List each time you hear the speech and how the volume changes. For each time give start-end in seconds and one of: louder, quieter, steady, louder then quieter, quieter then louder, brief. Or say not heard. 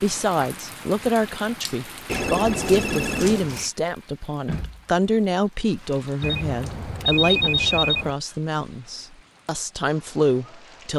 0.0-10.9 steady.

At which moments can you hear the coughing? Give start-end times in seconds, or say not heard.
not heard.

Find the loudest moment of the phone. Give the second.
7 s.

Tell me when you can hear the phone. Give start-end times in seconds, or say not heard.
2.0-3.7, 6.2-8.2.